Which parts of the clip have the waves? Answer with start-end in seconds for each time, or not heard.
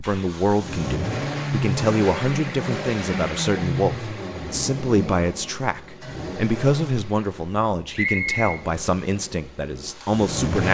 not heard.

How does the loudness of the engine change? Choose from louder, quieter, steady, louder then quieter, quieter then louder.
quieter.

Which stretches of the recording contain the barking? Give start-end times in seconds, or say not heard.
not heard.